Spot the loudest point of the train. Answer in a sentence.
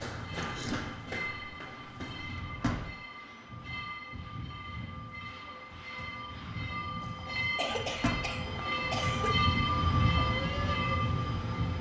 The loudest moment of the train is at 10 seconds.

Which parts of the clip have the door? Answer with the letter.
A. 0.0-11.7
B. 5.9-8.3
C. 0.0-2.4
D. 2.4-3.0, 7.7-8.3
D.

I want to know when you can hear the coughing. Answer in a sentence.
You can hear the coughing from 0.3 to 0.8 s and from 7.3 to 9.3 s.